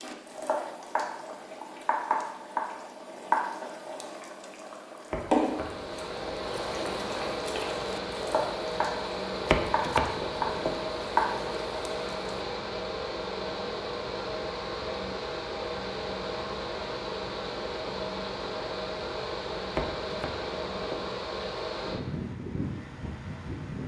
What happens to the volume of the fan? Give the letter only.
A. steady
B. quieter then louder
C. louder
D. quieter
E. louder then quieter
A.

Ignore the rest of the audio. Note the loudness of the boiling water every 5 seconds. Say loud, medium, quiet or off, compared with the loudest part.
loud, loud, loud, off, off.